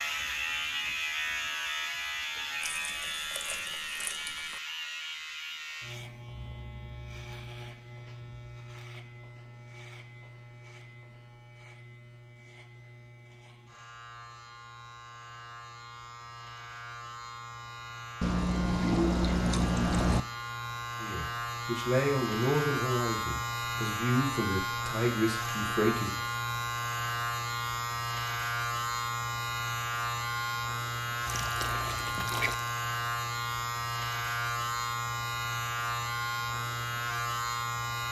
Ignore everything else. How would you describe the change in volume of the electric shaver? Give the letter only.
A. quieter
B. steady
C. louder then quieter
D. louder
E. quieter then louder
E.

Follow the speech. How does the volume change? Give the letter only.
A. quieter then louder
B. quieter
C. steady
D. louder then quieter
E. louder
A.